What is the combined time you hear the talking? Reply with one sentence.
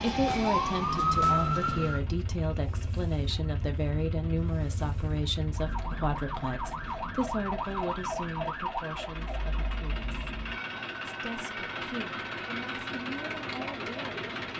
The talking can be heard for 13 seconds in total.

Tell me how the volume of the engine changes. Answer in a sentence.
The loudness of the engine goes up.